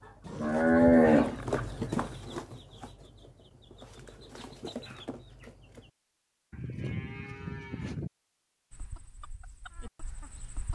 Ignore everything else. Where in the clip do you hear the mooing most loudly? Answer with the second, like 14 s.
1 s.